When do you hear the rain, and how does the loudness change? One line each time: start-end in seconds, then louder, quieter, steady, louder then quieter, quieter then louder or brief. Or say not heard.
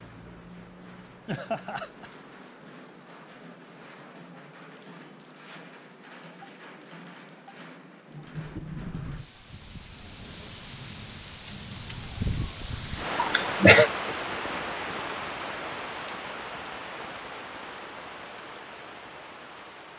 0.0-19.9 louder then quieter.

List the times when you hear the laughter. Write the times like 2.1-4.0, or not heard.
1.2-2.1, 13.2-13.9.